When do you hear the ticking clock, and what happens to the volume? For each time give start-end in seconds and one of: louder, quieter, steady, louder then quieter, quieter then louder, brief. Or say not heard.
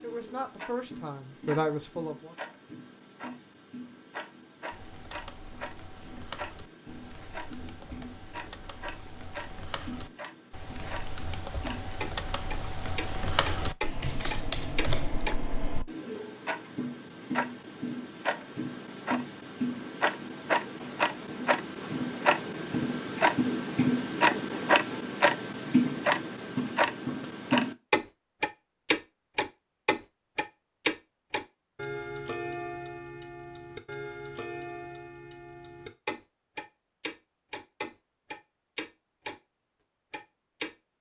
0.0-39.4 louder then quieter
40.1-40.7 brief.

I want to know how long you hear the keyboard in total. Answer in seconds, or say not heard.
11 s.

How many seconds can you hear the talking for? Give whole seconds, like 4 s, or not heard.
2 s.